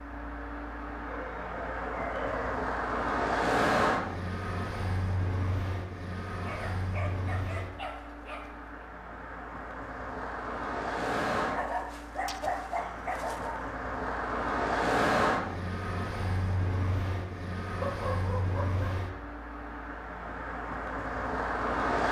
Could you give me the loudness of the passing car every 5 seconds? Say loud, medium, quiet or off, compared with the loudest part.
loud, medium, loud, loud, loud.